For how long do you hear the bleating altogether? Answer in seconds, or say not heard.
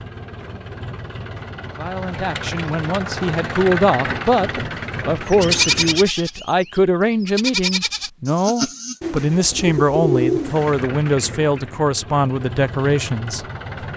4 s.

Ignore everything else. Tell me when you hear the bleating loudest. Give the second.
6 s.